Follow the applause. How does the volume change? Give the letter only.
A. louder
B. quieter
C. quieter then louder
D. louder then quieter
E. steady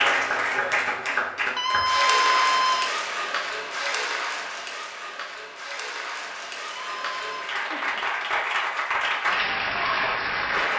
C.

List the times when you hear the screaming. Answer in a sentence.
You can hear the screaming from 1.6 to 3.0 s and from 6.7 to 7.5 s.